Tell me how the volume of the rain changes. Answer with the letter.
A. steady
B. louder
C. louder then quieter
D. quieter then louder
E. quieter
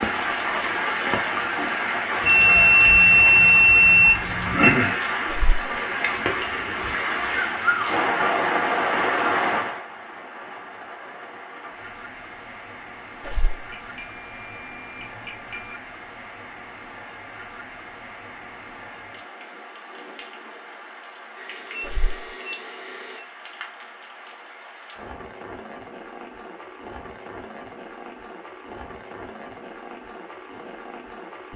E.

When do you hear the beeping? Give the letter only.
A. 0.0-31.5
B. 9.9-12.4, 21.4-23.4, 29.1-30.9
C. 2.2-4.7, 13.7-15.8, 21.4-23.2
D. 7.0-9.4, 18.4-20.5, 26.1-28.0
C.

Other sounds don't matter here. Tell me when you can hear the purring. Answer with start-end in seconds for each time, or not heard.
not heard.